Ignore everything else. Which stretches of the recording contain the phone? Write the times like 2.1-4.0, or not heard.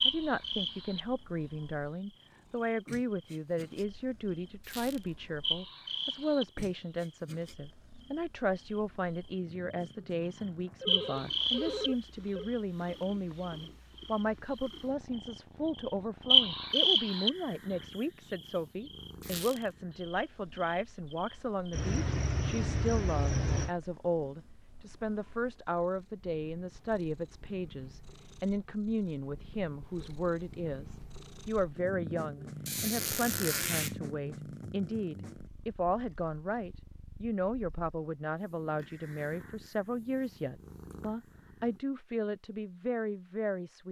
10.2-12.5.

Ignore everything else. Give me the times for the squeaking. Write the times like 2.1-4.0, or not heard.
4.6-5.1, 19.2-19.7, 32.6-34.0.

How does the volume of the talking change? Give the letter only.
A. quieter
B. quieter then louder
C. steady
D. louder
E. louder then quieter
C.